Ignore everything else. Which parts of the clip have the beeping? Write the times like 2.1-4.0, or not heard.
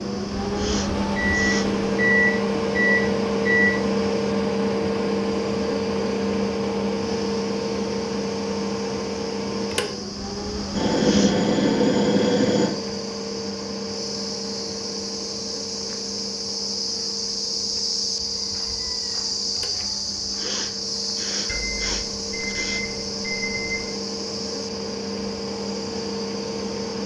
1.1-3.8, 10.8-12.7, 21.4-23.9.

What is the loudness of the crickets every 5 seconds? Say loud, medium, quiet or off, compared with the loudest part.
quiet, quiet, medium, loud, loud, medium.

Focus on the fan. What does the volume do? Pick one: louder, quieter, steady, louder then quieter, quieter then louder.
quieter then louder.